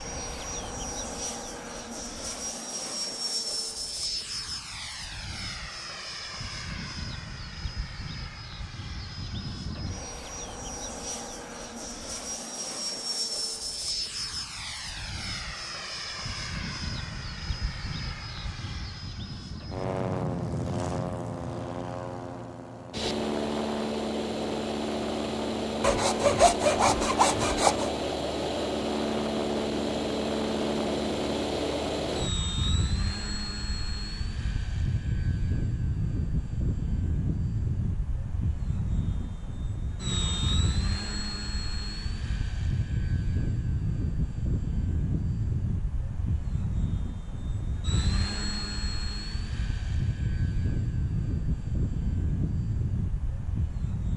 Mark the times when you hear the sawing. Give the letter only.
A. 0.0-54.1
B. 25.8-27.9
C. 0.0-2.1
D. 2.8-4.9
B.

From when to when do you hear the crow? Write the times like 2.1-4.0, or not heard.
not heard.